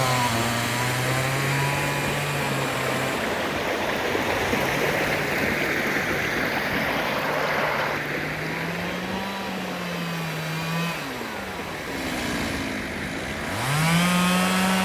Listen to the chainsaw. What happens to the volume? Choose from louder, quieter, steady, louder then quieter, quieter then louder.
quieter then louder.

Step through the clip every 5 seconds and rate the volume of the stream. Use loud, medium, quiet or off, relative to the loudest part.
loud, loud, medium.